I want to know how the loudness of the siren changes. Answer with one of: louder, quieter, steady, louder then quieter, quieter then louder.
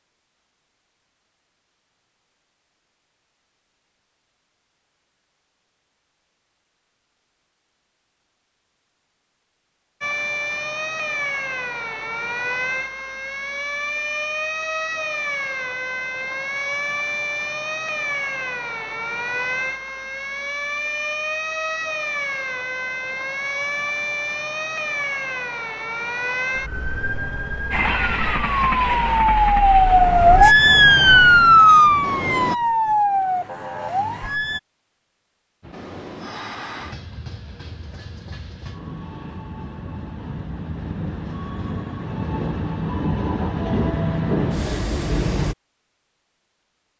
louder.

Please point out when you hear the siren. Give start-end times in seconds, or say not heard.
10.0-34.6.